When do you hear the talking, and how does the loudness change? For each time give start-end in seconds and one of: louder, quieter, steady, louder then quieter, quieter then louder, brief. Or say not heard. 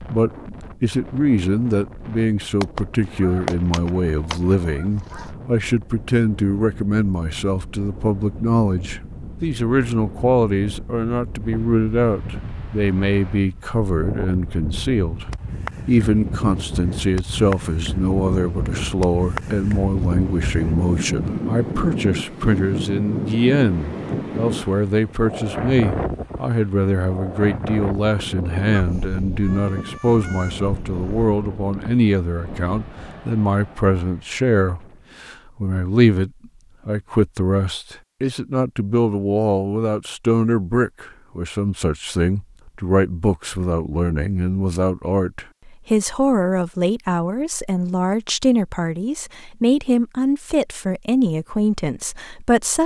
0.0-52.8 steady.